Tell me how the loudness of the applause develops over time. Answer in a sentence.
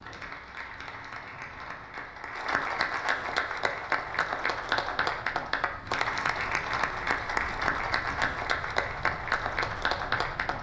The loudness of the applause goes up.